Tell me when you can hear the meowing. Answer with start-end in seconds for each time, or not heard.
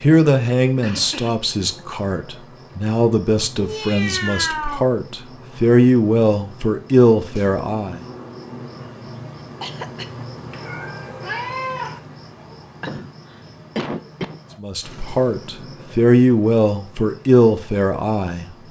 3.5-4.9, 10.5-12.0.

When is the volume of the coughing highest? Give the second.
14 s.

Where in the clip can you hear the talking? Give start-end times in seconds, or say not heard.
0.0-8.1, 14.6-18.5.